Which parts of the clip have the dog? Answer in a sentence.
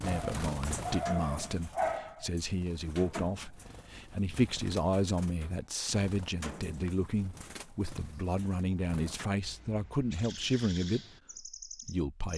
You can hear the dog from 0.0 to 2.3 s.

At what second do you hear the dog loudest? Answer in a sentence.
The loudest moment of the dog is at 2 seconds.